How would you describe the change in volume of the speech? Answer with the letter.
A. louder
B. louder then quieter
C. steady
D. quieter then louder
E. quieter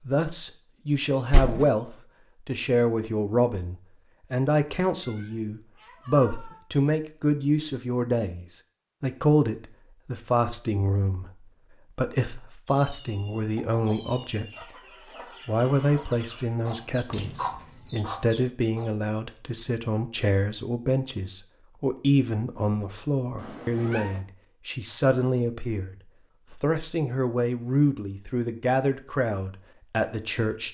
C.